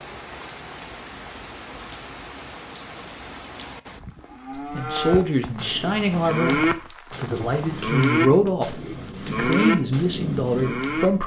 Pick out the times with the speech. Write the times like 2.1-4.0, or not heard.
4.7-11.2.